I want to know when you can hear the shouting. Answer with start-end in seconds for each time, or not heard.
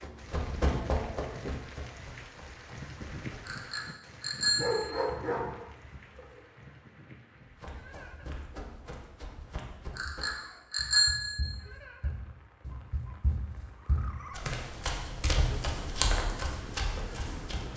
not heard.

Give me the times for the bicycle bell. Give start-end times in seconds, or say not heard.
3.5-5.0, 9.9-11.5.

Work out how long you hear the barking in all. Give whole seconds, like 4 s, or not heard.
2 s.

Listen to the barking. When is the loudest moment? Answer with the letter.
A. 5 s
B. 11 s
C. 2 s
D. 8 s
A.